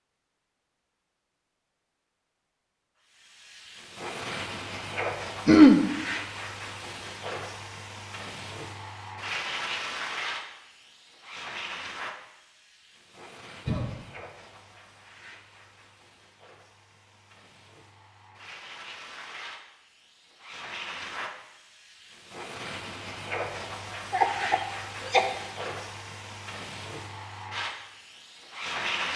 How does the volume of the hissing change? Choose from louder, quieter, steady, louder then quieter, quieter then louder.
quieter then louder.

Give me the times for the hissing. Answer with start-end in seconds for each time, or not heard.
3.0-29.1.